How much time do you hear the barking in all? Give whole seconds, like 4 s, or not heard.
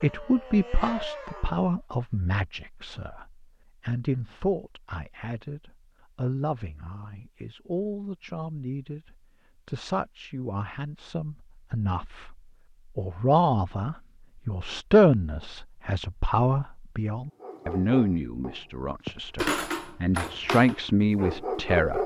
6 s.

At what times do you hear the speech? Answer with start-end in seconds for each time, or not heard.
0.0-22.0.